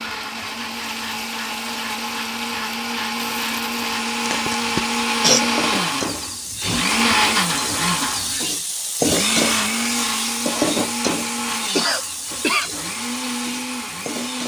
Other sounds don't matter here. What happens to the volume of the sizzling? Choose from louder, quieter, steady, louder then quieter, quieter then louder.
louder then quieter.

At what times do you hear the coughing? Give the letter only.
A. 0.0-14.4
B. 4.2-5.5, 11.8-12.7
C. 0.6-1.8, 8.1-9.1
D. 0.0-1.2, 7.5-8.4
B.